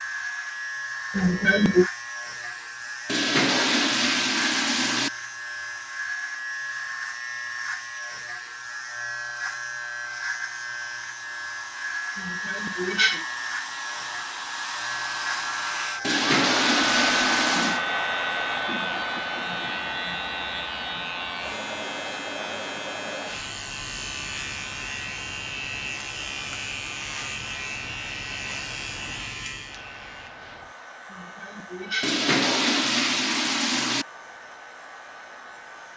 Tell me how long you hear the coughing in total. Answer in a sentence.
You can hear the coughing for 3 seconds altogether.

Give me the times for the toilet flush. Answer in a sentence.
You can hear the toilet flush from 3.0 to 5.1 s, from 16.0 to 17.8 s and from 32.0 to 34.0 s.